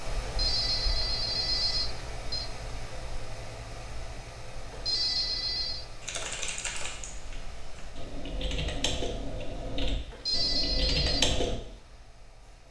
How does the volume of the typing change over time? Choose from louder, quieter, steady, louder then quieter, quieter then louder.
quieter then louder.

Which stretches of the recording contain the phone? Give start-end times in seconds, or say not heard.
0.2-2.5, 4.7-5.8, 10.1-11.2.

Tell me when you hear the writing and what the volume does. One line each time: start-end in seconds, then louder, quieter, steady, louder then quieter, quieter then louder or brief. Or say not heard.
not heard.